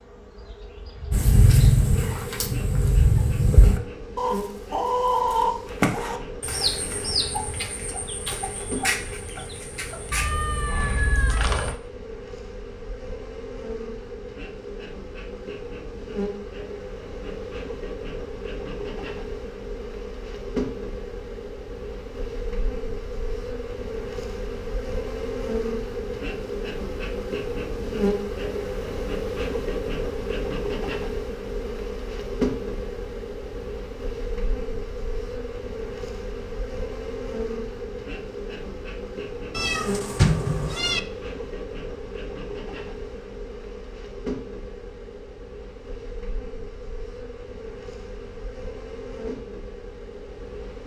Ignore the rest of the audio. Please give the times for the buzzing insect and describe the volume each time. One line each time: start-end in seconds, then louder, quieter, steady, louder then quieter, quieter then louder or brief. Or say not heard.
0.0-50.8 louder then quieter.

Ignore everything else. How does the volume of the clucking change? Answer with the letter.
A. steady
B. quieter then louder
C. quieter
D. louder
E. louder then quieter
C.